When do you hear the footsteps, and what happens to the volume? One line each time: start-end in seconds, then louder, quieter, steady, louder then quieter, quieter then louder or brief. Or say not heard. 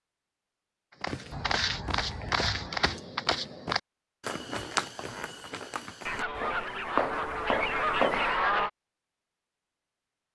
1.0-8.3 quieter then louder.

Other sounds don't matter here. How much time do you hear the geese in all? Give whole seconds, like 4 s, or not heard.
4 s.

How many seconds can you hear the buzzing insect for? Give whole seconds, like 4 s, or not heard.
not heard.